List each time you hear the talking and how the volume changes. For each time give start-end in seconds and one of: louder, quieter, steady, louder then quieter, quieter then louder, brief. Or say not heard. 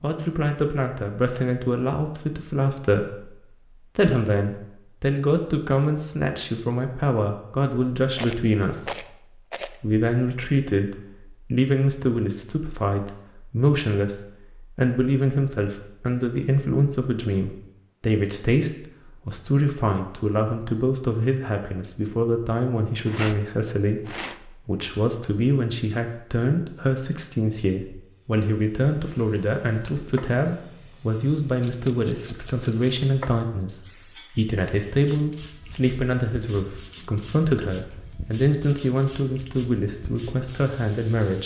0.0-41.4 steady.